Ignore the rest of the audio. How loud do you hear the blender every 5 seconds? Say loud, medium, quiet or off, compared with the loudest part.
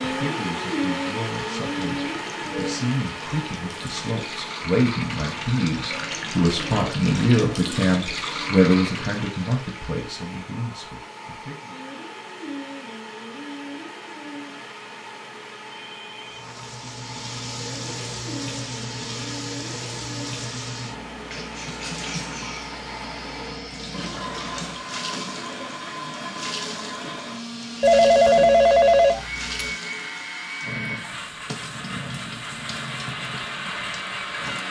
loud, medium, medium, medium, medium, loud, loud.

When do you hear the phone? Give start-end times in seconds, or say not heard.
2.0-2.8, 15.7-16.6, 27.8-29.7.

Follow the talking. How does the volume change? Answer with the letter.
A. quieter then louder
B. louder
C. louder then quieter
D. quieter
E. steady
C.